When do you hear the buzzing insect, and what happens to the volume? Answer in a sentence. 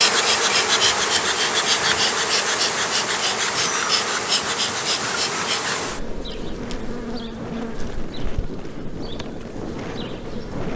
The buzzing insect can be heard from 0.0 to 10.7 s, getting quieter.